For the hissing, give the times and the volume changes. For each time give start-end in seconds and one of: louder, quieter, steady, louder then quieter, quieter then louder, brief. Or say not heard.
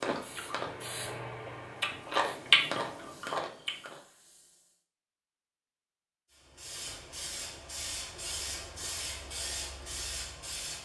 0.1-4.8 quieter
6.3-10.8 steady.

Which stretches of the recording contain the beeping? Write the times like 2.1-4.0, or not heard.
not heard.